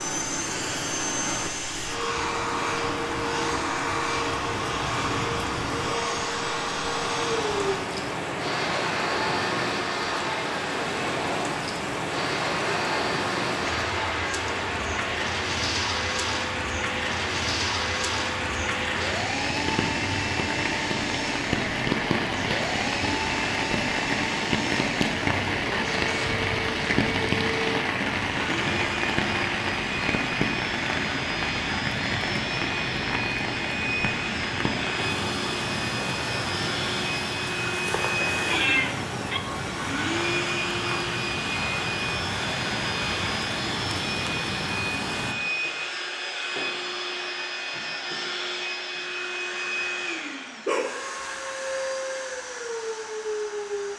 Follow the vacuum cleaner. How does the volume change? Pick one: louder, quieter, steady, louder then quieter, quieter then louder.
steady.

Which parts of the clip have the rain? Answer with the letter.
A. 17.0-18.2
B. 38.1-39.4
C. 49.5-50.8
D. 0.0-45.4
D.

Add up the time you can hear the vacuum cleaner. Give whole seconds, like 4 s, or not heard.
54 s.